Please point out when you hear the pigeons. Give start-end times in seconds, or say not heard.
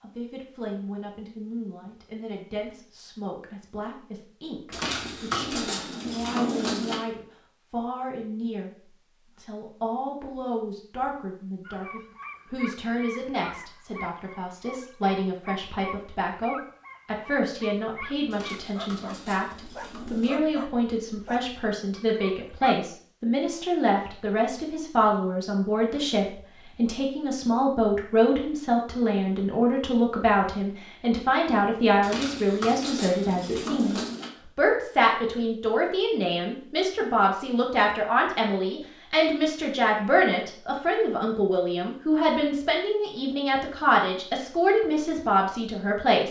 4.7-7.0, 18.3-20.4, 32.0-34.3.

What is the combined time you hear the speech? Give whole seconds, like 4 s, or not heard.
46 s.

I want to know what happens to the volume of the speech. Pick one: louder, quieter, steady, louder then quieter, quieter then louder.
louder.